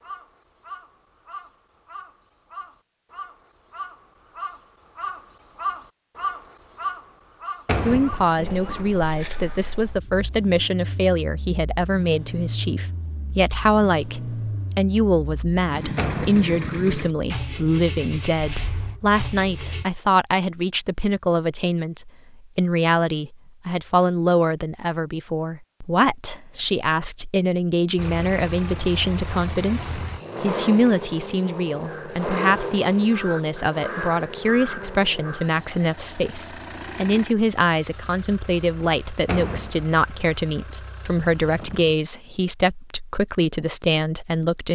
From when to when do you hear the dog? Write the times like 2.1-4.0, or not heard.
not heard.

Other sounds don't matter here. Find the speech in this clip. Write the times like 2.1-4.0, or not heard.
7.8-44.7.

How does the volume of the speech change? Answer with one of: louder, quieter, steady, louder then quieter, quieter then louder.
steady.